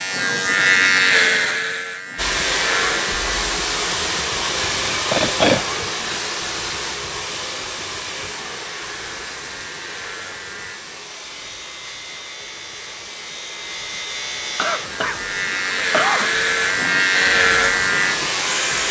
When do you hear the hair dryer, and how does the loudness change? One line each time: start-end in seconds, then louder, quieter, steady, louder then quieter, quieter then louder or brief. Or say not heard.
2.1-18.8 quieter then louder.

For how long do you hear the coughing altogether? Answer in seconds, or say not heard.
3 s.